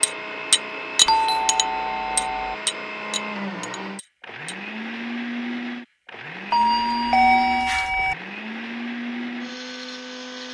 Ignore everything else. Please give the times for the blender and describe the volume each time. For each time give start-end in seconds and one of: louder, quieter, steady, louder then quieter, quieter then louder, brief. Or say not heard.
0.0-10.4 steady.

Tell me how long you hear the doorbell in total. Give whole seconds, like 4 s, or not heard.
3 s.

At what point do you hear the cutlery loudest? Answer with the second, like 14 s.
1 s.